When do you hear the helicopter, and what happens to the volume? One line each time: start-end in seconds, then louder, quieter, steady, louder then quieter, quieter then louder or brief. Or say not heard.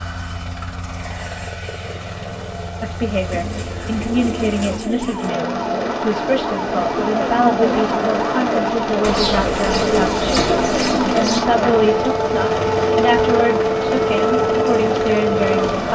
0.0-15.9 louder.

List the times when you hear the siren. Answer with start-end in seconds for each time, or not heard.
4.7-15.9.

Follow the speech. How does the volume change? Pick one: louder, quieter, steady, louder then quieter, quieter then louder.
steady.